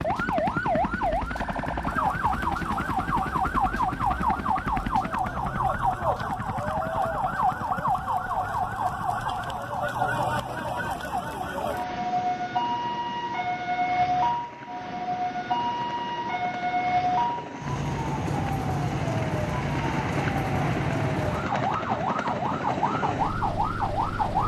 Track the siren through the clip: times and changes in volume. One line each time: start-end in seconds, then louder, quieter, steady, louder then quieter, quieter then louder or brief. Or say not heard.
0.0-24.4 steady.